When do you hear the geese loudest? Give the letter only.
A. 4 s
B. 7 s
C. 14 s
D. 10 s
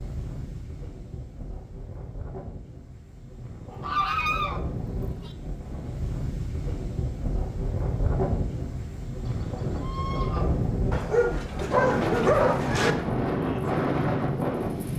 A.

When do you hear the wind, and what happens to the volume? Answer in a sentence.
The wind can be heard from 0.0 to 14.9 s, getting louder.